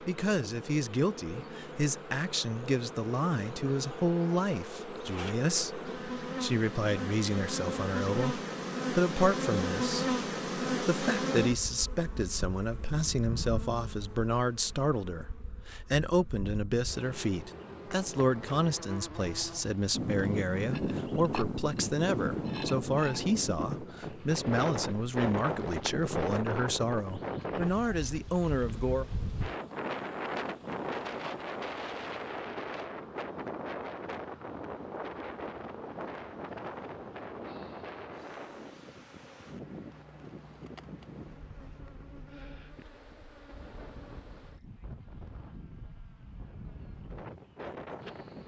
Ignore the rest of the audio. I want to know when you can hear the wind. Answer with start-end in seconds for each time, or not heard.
19.9-48.4.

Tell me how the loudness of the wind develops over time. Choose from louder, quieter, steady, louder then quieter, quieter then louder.
quieter.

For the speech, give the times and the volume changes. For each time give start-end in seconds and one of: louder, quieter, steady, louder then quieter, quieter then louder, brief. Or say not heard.
0.0-29.1 steady.